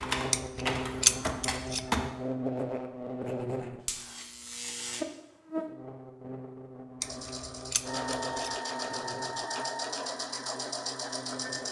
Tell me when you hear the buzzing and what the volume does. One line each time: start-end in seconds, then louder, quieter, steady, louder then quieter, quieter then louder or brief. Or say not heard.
0.0-11.6 quieter.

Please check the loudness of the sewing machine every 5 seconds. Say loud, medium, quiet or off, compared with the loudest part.
off, loud, loud.